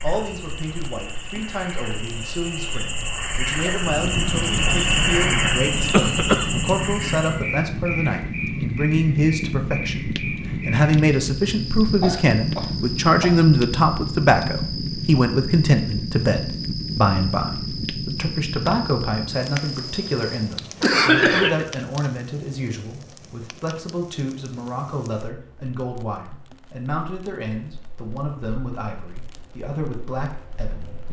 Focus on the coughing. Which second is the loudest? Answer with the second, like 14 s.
21 s.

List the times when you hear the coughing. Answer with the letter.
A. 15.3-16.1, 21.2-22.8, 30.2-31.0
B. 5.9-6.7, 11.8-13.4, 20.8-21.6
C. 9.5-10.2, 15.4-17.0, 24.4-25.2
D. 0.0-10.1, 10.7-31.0
B.